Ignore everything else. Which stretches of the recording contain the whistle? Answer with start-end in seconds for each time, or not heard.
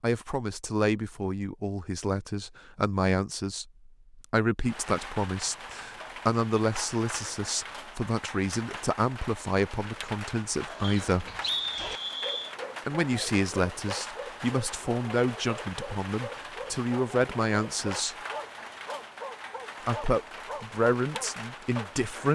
10.8-12.6.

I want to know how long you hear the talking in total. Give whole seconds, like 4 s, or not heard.
19 s.